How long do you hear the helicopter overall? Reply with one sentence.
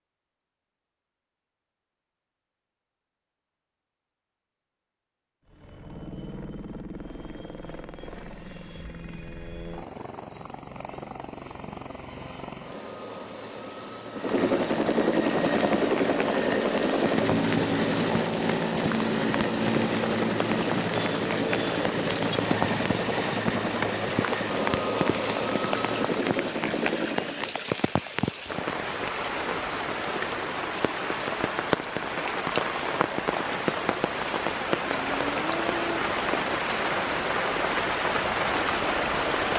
You can hear the helicopter for 22 seconds altogether.